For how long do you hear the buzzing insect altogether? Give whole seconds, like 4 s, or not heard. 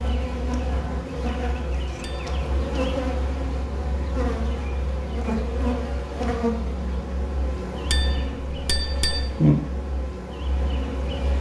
11 s.